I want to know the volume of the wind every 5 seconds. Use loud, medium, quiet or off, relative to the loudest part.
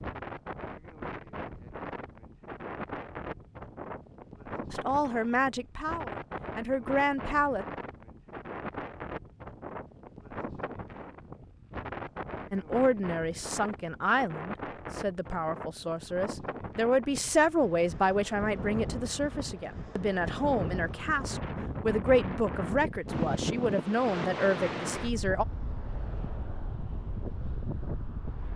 medium, medium, medium, medium, loud, medium.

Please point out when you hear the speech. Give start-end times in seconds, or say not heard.
4.7-7.7, 12.5-25.4.